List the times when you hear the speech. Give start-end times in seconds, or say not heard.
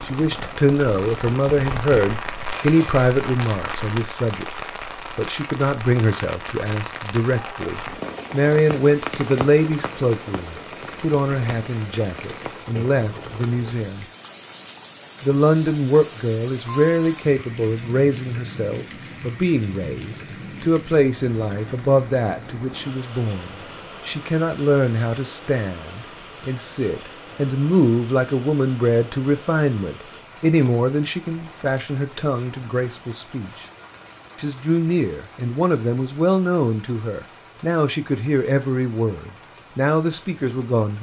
0.0-14.1, 15.2-33.6, 34.4-40.9.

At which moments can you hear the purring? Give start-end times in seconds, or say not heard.
not heard.